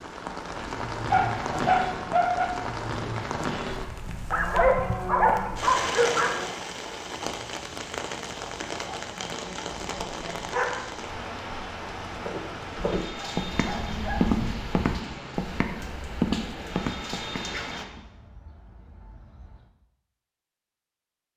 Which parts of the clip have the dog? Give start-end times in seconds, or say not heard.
1.1-2.5, 4.3-6.5, 9.8-11.2, 12.8-14.8, 17.4-19.6.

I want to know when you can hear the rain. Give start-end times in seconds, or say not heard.
0.0-17.9.